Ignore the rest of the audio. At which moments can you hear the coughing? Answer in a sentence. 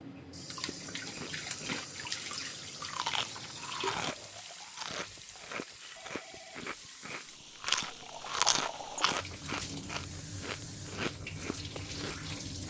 The coughing can't be heard in this clip.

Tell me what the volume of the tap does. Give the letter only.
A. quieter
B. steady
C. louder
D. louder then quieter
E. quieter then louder
E.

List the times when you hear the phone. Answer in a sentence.
The phone can be heard from 6.0 to 6.8 s.